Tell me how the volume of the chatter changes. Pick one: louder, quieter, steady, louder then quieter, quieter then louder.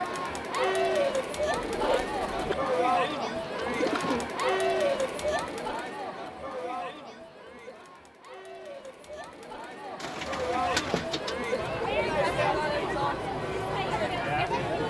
quieter then louder.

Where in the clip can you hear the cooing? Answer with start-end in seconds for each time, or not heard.
1.5-4.3, 10.0-11.3.